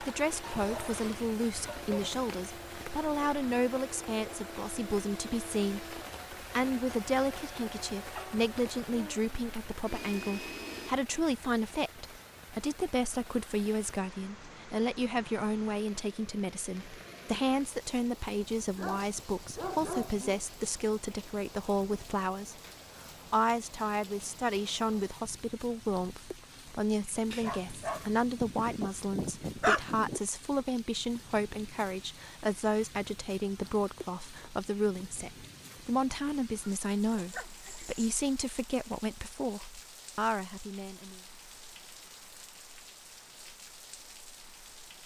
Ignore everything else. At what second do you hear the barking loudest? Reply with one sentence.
The loudest moment of the barking is at 30 seconds.